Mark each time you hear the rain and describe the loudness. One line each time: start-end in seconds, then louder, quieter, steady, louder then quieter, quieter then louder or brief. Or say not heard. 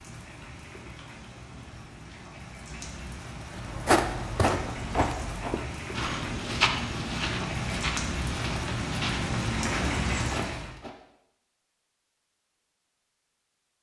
0.0-10.7 louder.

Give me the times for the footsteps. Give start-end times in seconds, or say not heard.
3.5-10.9.